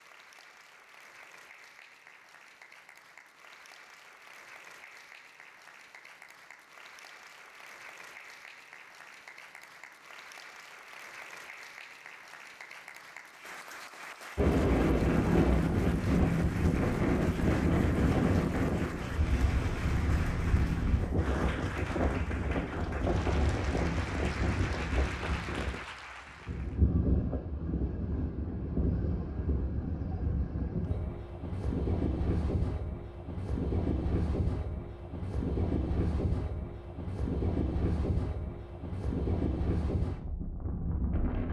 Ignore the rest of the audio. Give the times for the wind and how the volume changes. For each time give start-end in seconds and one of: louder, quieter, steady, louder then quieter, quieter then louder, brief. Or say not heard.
14.3-41.4 quieter.